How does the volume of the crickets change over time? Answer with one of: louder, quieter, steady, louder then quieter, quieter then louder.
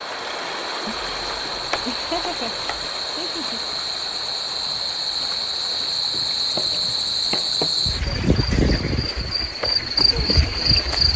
louder.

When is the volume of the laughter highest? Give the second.
2 s.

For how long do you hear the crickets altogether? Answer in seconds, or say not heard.
11 s.